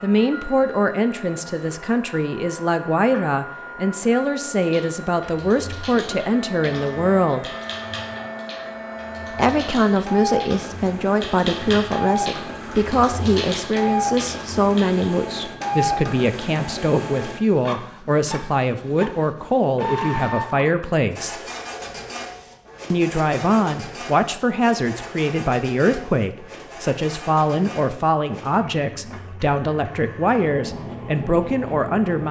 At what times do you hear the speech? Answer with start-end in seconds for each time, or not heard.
0.0-7.5, 9.3-21.4, 22.9-32.2.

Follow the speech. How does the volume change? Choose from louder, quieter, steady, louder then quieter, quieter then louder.
steady.